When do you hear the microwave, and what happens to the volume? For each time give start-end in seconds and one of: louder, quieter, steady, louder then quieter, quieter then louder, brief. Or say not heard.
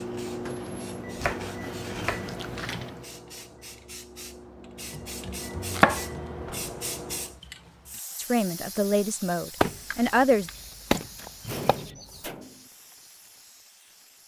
0.0-7.4 quieter then louder.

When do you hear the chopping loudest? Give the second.
6 s.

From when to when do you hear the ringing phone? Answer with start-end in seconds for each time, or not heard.
not heard.